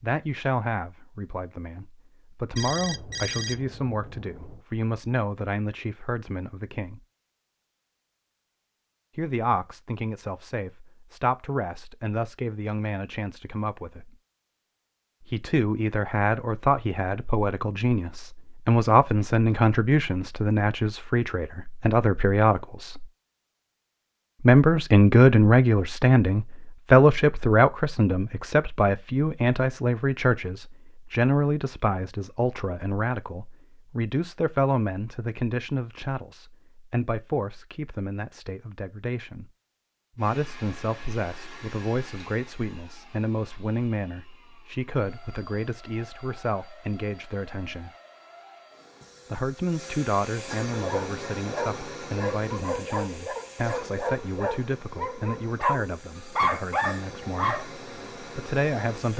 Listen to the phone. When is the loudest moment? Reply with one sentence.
The volume of the phone peaks at 3 seconds.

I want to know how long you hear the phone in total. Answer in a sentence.
You can hear the phone for 2 seconds altogether.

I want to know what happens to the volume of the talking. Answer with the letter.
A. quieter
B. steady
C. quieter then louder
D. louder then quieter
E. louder
D.